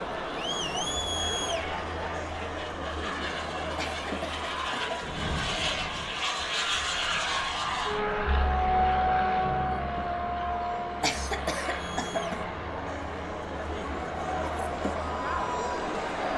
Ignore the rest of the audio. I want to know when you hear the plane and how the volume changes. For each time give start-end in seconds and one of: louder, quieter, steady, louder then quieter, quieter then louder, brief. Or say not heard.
0.0-16.3 louder then quieter.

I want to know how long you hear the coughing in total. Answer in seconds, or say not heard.
3 s.